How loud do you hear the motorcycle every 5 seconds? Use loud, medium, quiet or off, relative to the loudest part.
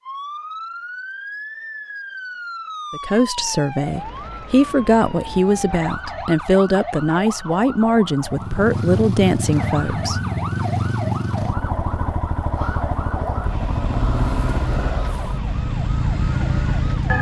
off, loud, loud, loud.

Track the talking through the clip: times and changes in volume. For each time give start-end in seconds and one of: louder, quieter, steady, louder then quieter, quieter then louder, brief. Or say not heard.
2.9-10.2 steady.